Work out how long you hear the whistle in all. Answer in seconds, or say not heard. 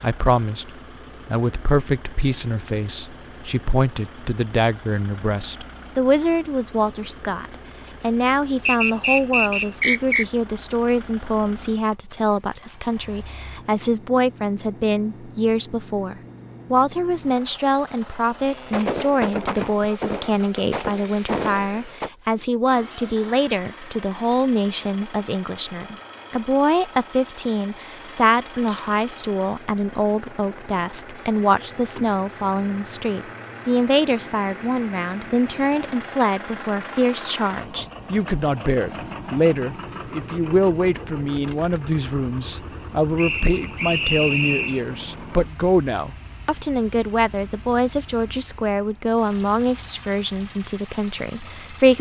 3 s.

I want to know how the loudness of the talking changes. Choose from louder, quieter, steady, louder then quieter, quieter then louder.
steady.